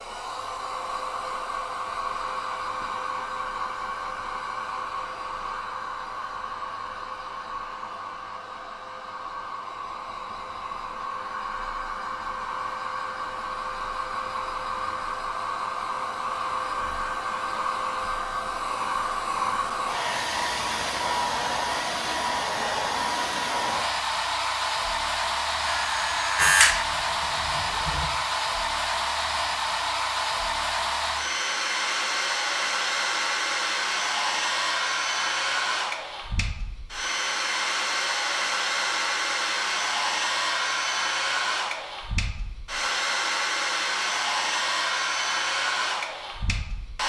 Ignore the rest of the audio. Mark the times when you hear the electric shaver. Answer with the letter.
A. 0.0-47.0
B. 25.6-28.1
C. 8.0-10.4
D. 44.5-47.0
B.